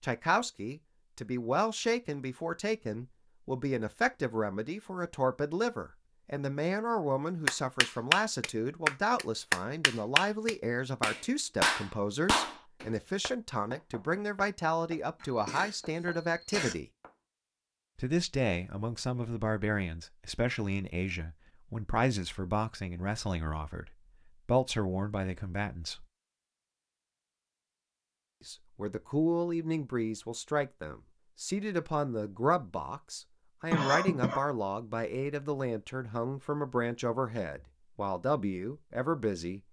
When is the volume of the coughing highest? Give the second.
34 s.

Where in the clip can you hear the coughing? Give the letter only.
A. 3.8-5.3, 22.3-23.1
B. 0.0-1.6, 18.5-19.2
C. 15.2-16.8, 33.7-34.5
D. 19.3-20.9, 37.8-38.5
C.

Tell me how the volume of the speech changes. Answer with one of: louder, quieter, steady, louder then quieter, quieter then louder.
steady.